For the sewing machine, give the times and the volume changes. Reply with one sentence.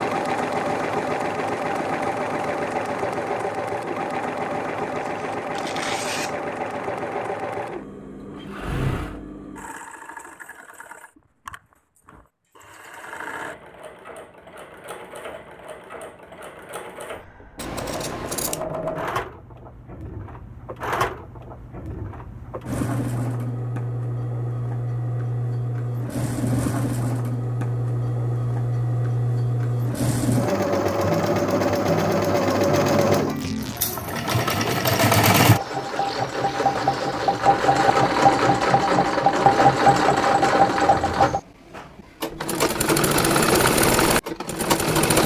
You can hear the sewing machine from 0.0 to 45.2 s, getting quieter then louder.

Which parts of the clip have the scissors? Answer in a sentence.
You can hear the scissors from 17.6 to 18.6 s.